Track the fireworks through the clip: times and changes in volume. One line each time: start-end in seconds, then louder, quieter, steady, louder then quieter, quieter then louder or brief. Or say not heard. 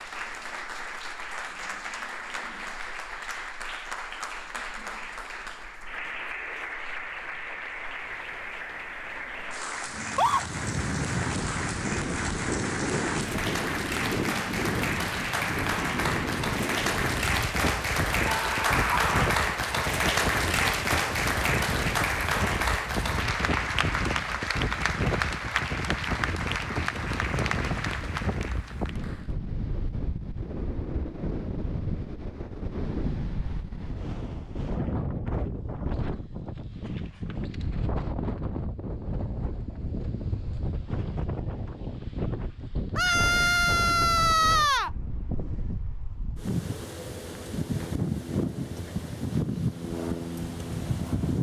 not heard.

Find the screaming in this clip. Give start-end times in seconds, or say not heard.
9.9-10.4, 18.2-19.4, 43.0-44.9.